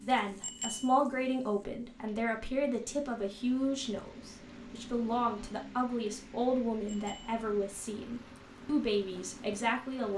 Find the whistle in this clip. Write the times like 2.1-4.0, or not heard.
not heard.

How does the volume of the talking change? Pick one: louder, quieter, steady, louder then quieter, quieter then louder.
steady.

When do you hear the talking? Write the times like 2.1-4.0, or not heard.
0.0-10.1.